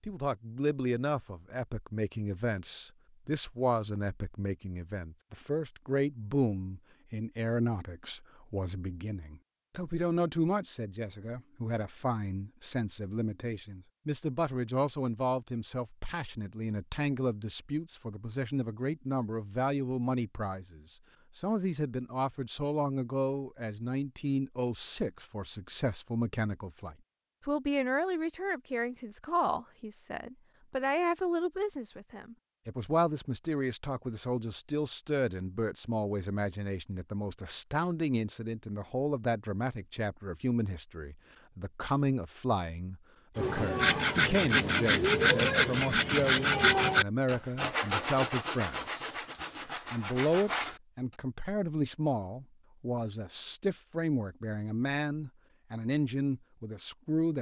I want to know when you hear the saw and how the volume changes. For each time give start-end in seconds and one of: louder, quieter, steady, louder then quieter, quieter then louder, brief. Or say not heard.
43.4-50.8 quieter.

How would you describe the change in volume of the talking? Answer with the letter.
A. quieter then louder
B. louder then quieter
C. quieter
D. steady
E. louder
D.